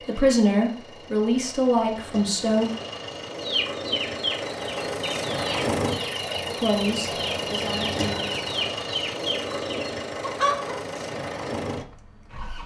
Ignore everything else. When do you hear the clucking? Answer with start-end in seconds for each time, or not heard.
3.4-10.8.